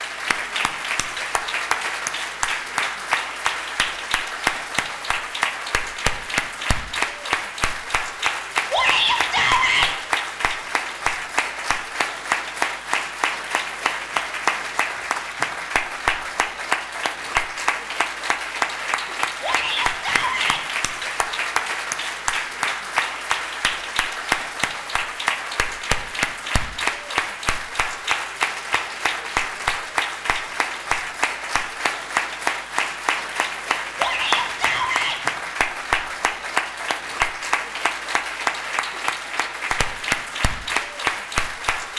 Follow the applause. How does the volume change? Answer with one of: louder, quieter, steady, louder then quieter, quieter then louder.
steady.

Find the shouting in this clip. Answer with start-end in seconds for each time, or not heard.
8.7-9.9, 19.4-20.6, 34.0-35.2.